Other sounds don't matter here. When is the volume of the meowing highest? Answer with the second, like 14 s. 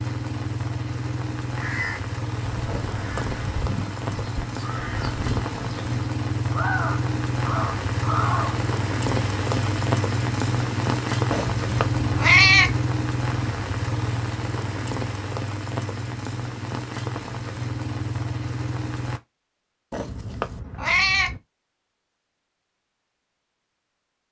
12 s.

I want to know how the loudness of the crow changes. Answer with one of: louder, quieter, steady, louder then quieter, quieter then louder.
louder.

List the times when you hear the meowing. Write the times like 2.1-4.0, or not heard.
2.6-3.4, 11.3-12.8, 19.9-21.4.